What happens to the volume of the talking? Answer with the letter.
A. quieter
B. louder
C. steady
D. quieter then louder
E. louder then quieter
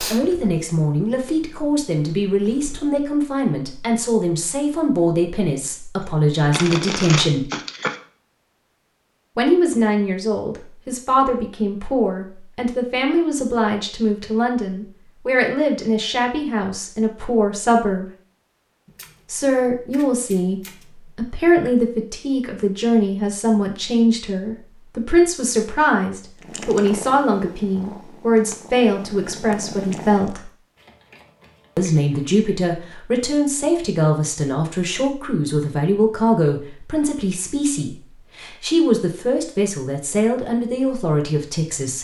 C.